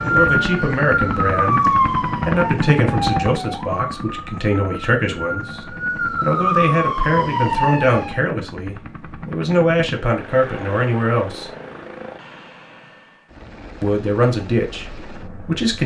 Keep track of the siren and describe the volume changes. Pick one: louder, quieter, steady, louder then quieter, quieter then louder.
quieter then louder.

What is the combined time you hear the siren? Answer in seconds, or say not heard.
8 s.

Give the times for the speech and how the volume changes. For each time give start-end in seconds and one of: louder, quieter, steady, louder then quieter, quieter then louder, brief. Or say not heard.
0.0-11.5 steady
13.8-15.8 brief.